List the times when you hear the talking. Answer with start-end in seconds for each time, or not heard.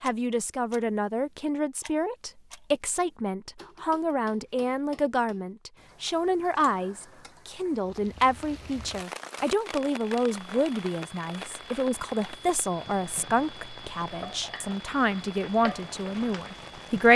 0.0-17.1.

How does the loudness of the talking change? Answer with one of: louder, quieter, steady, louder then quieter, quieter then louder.
steady.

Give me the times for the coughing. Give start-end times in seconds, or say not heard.
not heard.